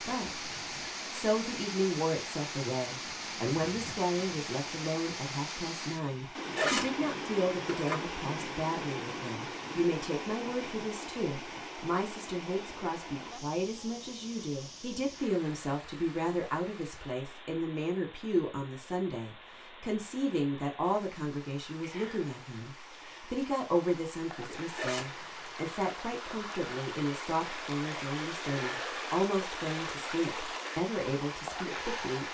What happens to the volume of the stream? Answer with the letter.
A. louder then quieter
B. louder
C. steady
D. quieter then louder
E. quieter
D.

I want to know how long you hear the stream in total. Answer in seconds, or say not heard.
32 s.